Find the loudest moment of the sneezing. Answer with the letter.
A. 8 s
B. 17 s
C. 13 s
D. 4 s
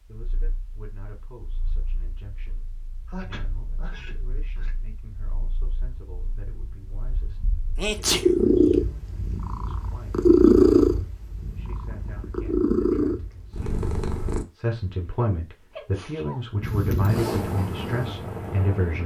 A.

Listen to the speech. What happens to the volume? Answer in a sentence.
The volume of the speech goes up.